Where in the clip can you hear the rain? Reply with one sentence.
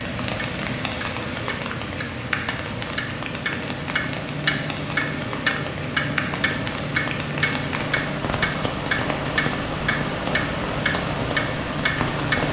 You can hear the rain from 0.0 to 12.4 s.